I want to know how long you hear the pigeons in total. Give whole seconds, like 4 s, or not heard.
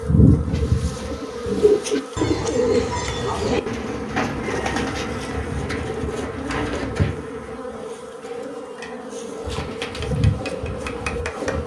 11 s.